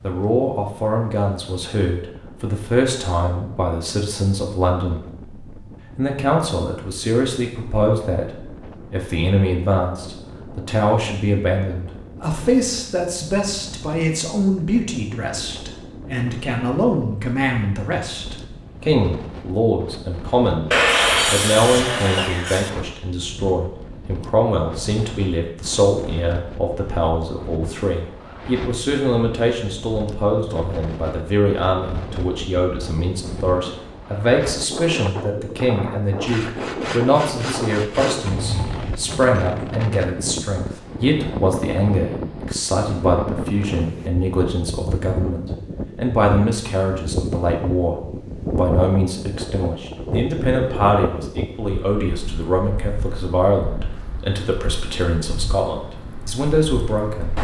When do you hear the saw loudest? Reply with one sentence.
The loudest moment of the saw is at 21 seconds.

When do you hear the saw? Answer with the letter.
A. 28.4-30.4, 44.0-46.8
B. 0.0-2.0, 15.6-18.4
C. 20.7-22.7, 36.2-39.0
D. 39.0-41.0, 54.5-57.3
C.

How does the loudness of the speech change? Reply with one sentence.
The volume of the speech stays about the same.